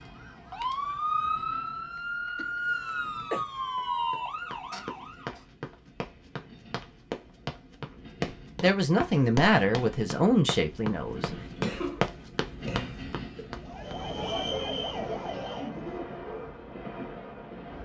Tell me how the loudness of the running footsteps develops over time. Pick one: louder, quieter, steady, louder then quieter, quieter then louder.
louder.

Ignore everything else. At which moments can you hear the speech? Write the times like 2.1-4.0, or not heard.
8.6-11.3.